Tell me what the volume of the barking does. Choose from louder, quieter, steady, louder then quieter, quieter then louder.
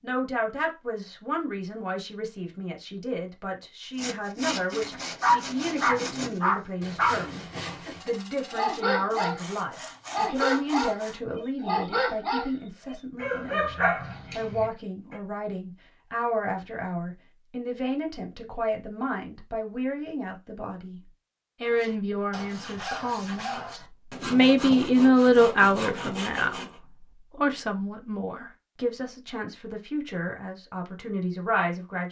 quieter.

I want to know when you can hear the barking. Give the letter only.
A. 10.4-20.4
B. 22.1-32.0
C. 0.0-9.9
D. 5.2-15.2
D.